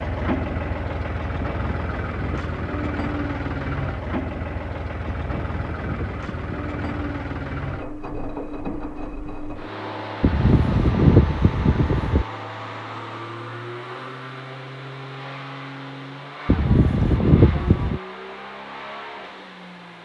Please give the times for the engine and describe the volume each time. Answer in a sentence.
You can hear the engine from 0.0 to 20.0 s, getting quieter.